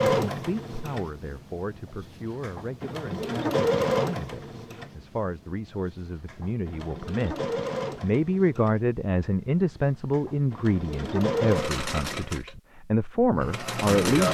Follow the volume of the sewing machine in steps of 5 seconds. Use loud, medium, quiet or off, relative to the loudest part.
loud, medium, loud.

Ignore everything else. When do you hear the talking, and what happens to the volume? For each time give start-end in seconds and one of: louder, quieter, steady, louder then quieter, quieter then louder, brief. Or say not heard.
0.2-14.2 louder.